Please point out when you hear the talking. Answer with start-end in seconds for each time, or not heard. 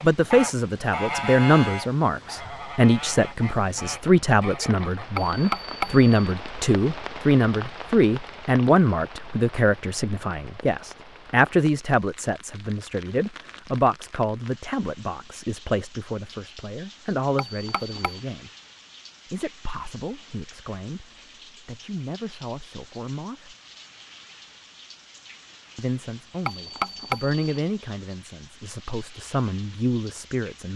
0.0-18.5, 19.3-23.6, 25.8-30.7.